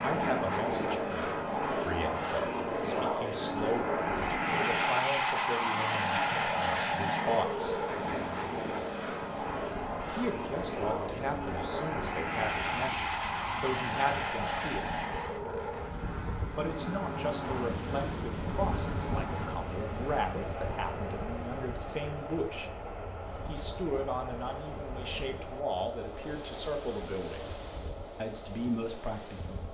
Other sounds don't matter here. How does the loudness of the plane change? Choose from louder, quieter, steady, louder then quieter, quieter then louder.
quieter.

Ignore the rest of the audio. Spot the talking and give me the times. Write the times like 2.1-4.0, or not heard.
0.0-7.8, 10.1-14.9, 16.6-22.7, 23.4-27.5, 28.1-29.6.